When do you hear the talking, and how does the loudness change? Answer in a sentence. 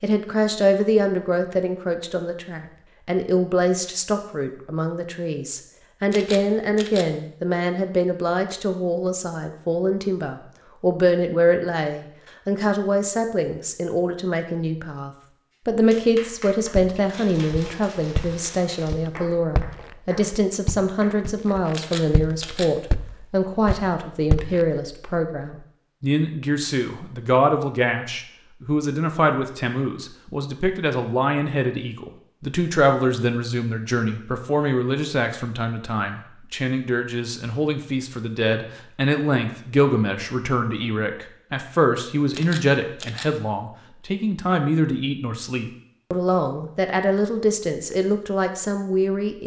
You can hear the talking from 0.0 to 49.4 s, at a steady volume.